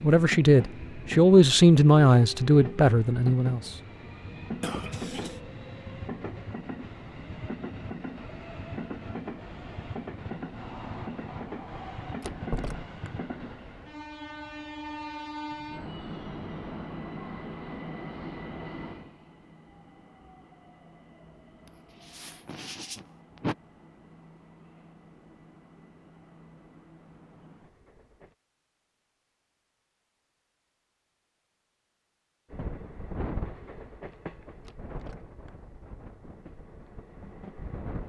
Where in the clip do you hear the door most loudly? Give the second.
13 s.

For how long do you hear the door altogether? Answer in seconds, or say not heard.
2 s.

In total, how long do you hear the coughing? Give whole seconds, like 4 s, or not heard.
3 s.